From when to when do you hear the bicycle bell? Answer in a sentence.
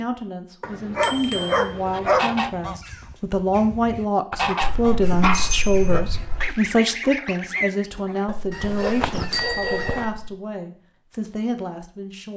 The bicycle bell can be heard from 1.0 to 1.6 s, from 4.6 to 6.5 s and from 9.3 to 10.1 s.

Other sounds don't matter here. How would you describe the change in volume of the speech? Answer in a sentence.
The loudness of the speech goes up, then down.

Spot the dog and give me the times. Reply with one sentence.
You can hear the dog from 0.6 to 2.4 s, from 4.5 to 6.0 s and from 8.2 to 10.4 s.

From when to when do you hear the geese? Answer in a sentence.
You can hear the geese from 1.9 to 10.1 s.